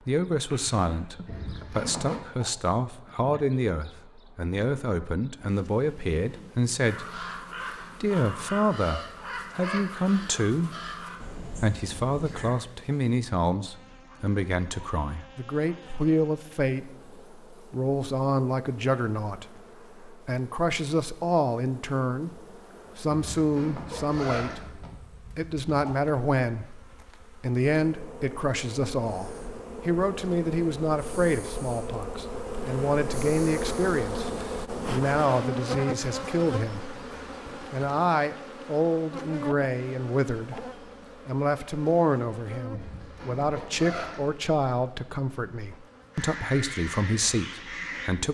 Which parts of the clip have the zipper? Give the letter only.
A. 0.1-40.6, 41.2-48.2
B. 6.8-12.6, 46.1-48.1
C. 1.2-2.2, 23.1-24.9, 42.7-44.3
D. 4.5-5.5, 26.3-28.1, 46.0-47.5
C.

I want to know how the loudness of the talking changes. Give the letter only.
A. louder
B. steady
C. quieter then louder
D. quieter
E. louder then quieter
B.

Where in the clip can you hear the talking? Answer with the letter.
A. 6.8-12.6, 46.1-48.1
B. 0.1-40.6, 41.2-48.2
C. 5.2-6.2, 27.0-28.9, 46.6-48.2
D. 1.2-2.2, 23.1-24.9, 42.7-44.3
B.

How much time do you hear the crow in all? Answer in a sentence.
You can hear the crow for 8 seconds altogether.